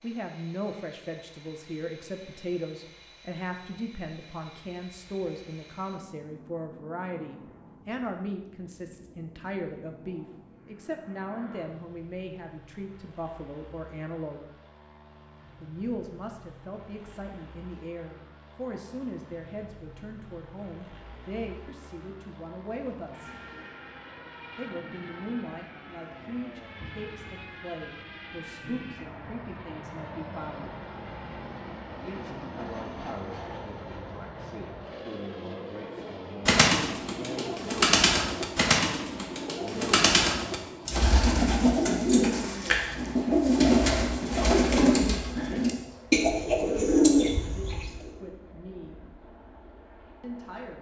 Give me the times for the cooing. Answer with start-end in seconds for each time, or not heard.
36.0-48.1.